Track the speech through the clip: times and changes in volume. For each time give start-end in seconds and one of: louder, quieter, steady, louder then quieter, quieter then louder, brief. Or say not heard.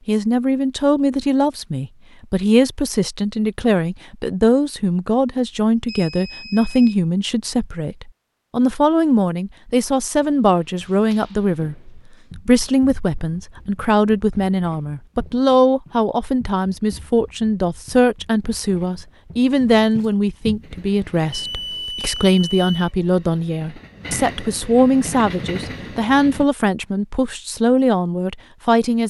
0.1-29.0 steady.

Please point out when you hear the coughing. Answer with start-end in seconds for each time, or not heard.
not heard.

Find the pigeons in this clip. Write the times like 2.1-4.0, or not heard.
not heard.